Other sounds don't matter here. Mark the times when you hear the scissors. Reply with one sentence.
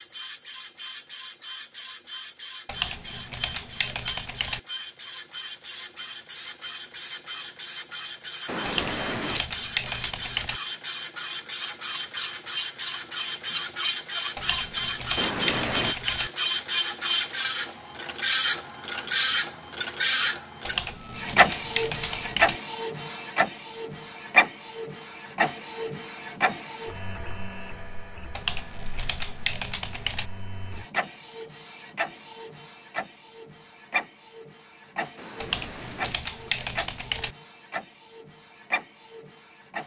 You can hear the scissors from 8.4 to 9.4 s, from 15.2 to 15.9 s and from 35.1 to 36.2 s.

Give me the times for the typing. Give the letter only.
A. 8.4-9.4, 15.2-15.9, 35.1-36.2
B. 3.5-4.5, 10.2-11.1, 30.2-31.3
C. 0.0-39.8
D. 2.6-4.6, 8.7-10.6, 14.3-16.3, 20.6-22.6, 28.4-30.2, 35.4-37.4
D.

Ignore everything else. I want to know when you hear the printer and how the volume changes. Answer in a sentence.
The printer can be heard from 0.0 to 39.8 s, getting louder then quieter.